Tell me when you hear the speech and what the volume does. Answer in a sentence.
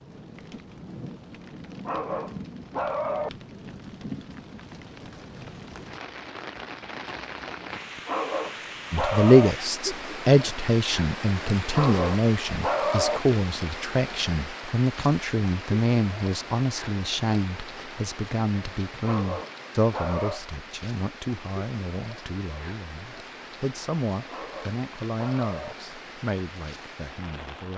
The speech can be heard from 8.9 to 27.7 s, getting quieter.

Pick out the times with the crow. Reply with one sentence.
The crow can't be heard in this clip.